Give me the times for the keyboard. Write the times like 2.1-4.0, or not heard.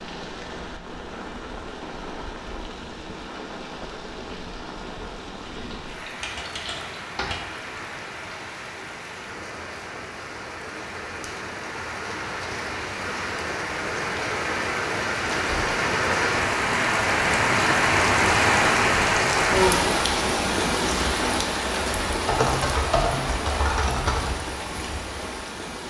5.5-7.4, 22.1-24.4.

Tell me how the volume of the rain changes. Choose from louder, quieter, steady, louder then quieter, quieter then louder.
louder then quieter.